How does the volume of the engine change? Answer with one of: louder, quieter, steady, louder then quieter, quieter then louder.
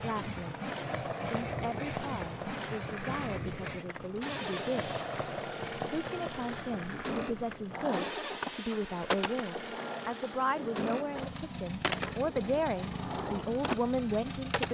steady.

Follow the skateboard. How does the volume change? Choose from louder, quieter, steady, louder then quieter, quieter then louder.
steady.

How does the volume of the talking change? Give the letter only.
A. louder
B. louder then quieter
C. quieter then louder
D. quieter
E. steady
A.